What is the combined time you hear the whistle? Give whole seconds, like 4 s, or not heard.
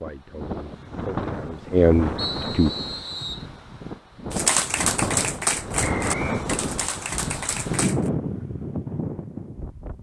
2 s.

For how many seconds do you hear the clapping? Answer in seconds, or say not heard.
4 s.